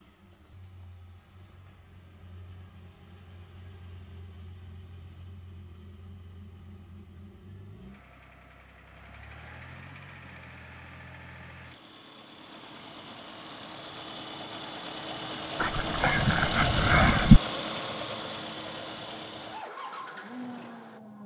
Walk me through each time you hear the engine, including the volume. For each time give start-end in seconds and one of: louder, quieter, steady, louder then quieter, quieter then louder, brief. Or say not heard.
0.0-21.2 louder.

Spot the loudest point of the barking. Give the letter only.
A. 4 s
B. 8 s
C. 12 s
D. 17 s
D.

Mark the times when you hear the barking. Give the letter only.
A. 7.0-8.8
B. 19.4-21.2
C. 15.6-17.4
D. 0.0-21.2
C.